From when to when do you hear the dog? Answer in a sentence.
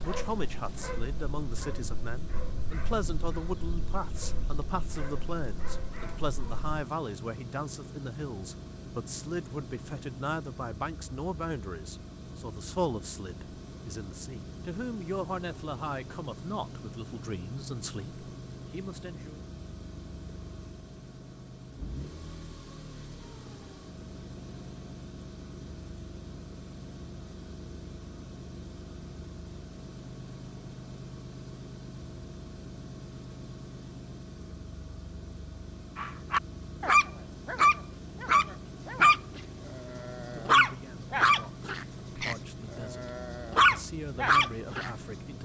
The dog can be heard from 0.0 to 6.7 s and from 36.0 to 44.9 s.